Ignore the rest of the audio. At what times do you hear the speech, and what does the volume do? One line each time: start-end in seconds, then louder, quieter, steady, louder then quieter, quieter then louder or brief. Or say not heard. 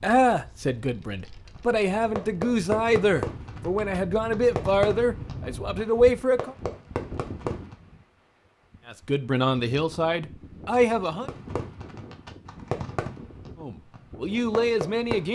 0.0-6.5 louder
8.8-11.3 brief
13.6-15.3 brief.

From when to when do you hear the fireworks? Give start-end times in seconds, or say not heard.
1.6-7.8, 11.2-15.3.